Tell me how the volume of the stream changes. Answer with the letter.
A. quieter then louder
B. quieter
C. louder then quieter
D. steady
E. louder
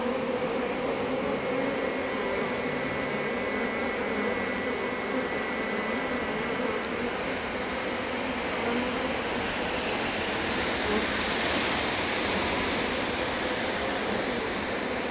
E.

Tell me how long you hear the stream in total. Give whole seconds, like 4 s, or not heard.
15 s.